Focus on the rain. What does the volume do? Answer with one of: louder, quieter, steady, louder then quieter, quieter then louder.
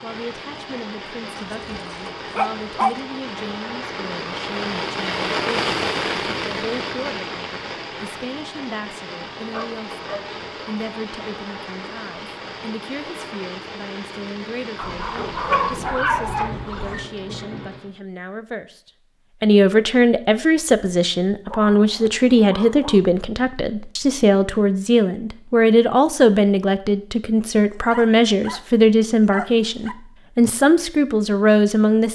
louder then quieter.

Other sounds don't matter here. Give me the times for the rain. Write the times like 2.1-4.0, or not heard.
0.0-17.9.